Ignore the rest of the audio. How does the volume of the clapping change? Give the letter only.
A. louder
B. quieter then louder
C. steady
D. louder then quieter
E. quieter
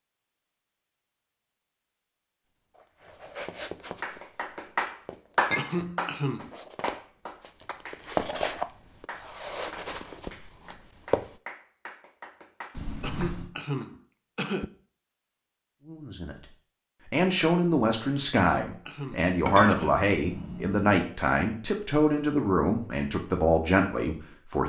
E.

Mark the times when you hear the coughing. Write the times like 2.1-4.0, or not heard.
5.5-6.5, 13.0-14.7, 18.3-20.1.